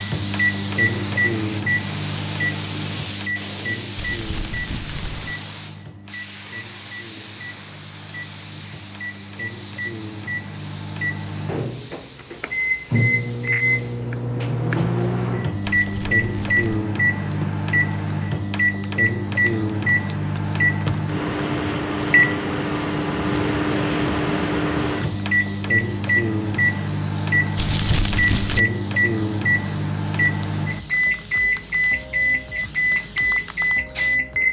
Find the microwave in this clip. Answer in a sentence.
You can hear the microwave from 0.0 to 34.4 s.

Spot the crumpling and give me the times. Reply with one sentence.
You can hear the crumpling from 4.0 to 5.3 s, from 15.6 to 16.9 s and from 27.6 to 28.6 s.